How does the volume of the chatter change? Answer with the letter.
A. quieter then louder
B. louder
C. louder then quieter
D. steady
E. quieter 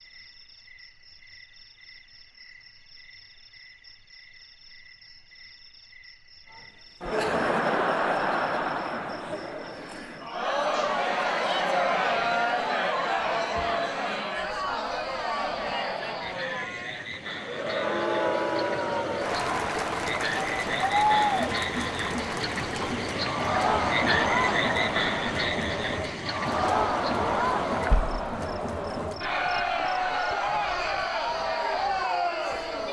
D.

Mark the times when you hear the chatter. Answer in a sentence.
You can hear the chatter from 6.5 to 32.8 s.